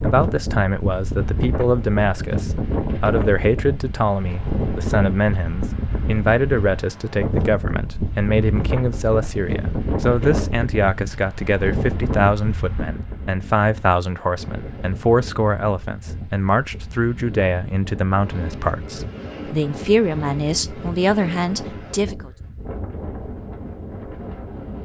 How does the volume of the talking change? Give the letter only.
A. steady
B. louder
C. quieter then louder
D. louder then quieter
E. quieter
A.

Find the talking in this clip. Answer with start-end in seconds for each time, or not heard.
0.0-22.3.